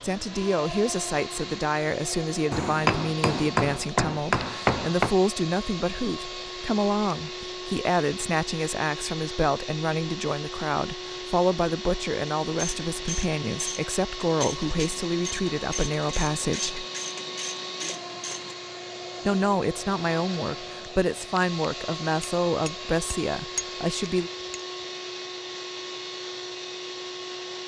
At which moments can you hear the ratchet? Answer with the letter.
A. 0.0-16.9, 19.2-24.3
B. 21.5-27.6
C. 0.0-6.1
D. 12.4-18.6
D.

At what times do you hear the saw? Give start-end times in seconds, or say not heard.
not heard.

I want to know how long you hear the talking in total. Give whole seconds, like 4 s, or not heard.
22 s.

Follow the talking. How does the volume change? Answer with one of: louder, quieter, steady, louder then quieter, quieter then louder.
steady.